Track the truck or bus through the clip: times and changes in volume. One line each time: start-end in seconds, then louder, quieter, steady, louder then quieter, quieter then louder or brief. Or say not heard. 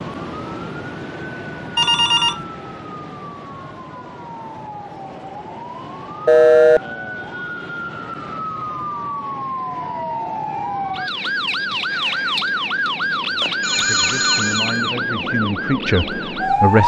not heard.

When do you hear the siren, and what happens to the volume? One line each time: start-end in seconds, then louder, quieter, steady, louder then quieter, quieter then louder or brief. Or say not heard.
0.0-16.8 louder.